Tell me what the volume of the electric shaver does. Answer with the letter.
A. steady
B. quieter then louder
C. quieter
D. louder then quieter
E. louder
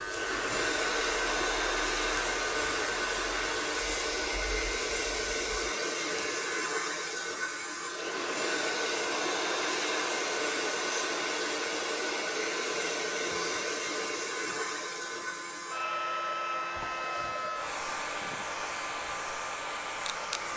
C.